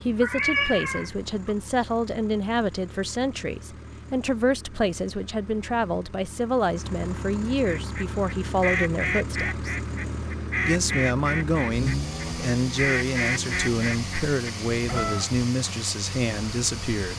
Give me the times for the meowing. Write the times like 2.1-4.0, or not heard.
0.2-1.6.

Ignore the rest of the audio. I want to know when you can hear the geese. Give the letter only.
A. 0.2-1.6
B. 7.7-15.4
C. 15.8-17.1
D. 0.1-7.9
B.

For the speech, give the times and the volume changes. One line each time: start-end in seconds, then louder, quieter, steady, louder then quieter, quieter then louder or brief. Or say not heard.
0.0-9.8 steady
10.7-17.1 steady.